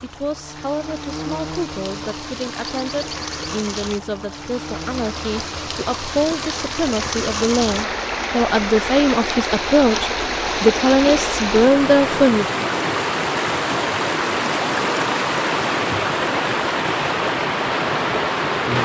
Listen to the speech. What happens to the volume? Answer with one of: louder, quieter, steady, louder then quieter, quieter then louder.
louder.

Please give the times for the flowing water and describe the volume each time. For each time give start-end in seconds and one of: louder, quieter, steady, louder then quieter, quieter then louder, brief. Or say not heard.
0.0-18.8 louder.